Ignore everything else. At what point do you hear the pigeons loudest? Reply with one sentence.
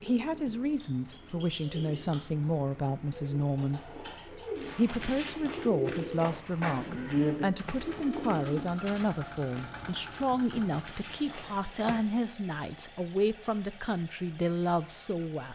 The volume of the pigeons peaks at 7 seconds.